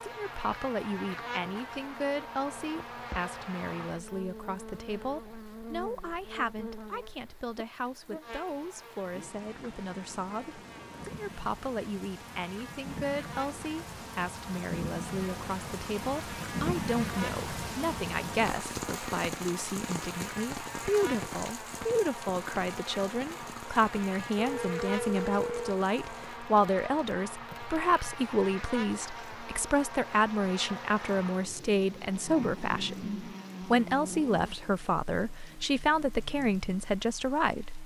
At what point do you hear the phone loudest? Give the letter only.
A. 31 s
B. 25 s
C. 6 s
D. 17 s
B.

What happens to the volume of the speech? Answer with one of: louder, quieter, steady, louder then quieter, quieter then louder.
louder.